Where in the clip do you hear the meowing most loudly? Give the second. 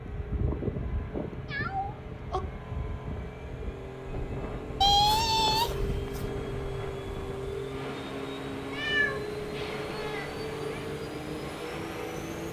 5 s.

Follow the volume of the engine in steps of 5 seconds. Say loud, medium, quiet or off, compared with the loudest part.
medium, loud, loud.